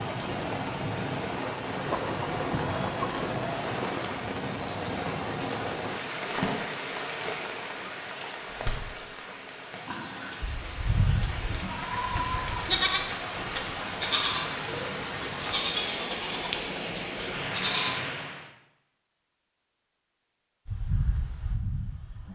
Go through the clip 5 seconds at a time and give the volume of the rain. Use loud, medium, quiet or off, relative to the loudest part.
loud, loud, loud, loud, off.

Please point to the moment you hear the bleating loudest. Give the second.
13 s.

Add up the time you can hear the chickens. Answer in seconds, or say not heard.
2 s.